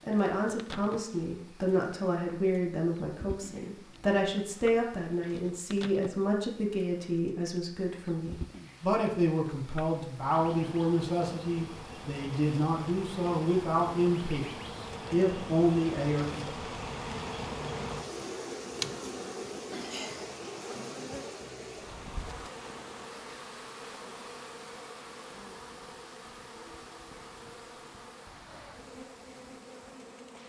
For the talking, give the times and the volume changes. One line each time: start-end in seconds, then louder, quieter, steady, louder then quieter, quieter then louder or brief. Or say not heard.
0.0-16.4 steady.